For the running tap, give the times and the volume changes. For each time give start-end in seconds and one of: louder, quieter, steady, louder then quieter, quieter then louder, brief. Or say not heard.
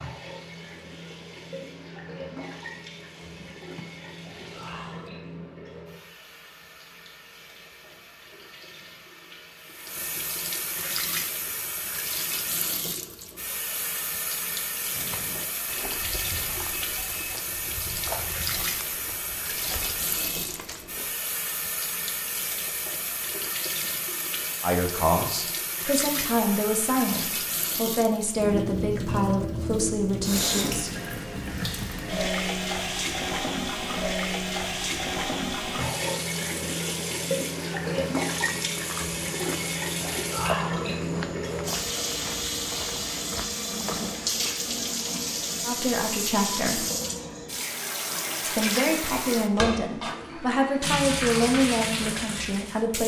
0.0-53.0 louder.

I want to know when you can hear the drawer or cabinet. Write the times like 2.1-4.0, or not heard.
3.1-5.1.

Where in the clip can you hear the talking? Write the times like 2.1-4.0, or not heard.
24.6-30.9, 45.6-46.9, 48.4-53.0.